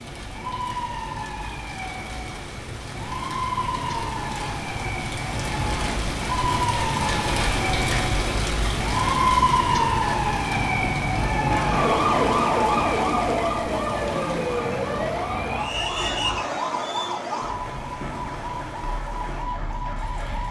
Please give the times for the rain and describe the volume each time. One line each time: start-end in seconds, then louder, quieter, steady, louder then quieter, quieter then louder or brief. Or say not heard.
0.0-20.4 louder then quieter.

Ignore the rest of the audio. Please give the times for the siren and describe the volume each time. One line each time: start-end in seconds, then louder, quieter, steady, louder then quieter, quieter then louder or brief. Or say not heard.
0.0-20.4 louder then quieter.